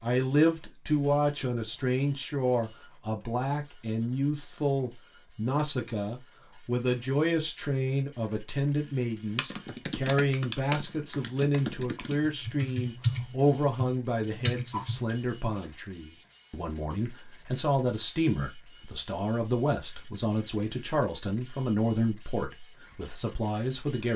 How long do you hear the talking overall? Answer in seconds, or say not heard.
24 s.